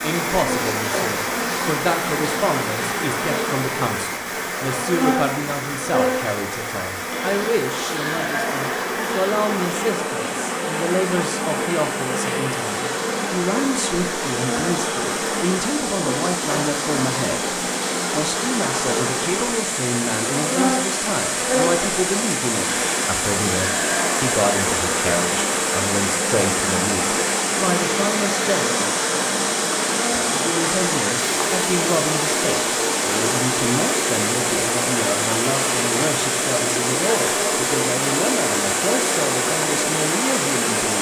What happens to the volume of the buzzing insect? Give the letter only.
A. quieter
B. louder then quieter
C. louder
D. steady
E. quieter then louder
D.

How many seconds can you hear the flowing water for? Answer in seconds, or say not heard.
41 s.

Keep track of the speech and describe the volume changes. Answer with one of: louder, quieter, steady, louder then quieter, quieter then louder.
steady.